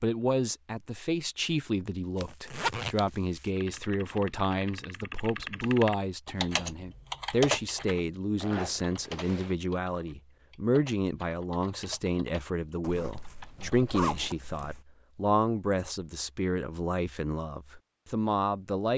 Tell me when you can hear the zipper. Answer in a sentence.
You can hear the zipper from 2.2 to 3.0 s, from 8.3 to 9.6 s and from 12.8 to 14.8 s.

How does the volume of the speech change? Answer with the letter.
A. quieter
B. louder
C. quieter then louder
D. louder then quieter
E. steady
E.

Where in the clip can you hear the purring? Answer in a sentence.
You can't hear the purring here.